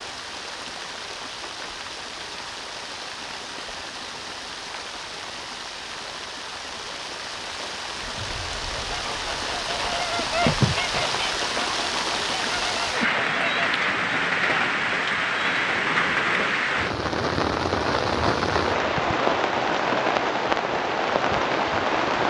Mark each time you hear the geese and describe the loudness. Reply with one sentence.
The geese can be heard from 8.0 to 13.6 s, getting louder then quieter.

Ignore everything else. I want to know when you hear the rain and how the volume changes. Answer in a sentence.
You can hear the rain from 0.0 to 22.2 s, getting louder.